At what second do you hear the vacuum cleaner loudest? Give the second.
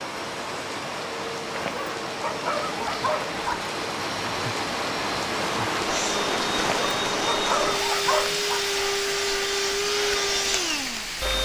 10 s.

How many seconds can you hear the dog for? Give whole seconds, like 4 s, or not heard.
4 s.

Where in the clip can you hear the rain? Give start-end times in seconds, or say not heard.
0.0-11.3.